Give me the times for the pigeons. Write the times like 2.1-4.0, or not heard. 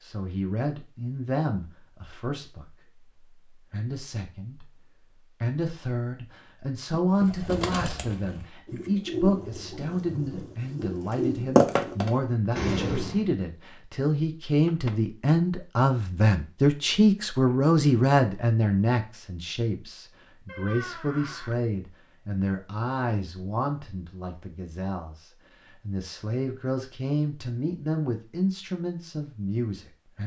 7.1-13.2.